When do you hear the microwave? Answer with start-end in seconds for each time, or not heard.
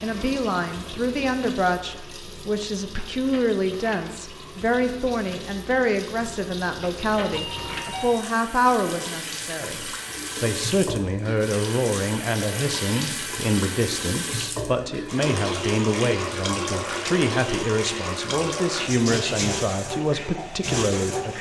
not heard.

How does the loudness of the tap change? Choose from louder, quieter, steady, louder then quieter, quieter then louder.
louder.